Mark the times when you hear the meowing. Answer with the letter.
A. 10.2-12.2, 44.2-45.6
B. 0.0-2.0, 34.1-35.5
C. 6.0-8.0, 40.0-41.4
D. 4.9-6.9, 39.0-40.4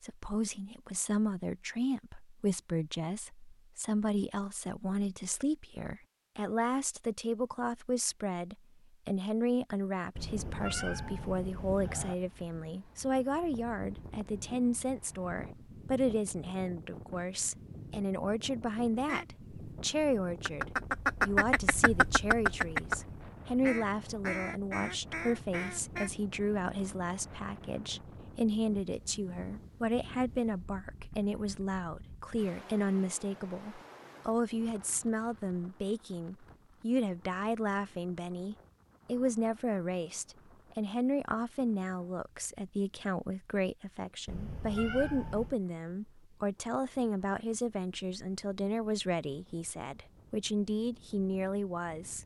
A.